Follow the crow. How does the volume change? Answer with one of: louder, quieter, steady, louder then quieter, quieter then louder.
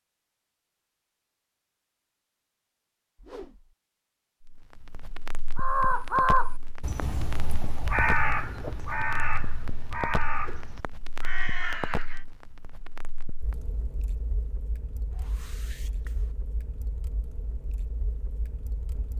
quieter.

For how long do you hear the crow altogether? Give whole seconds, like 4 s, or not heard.
7 s.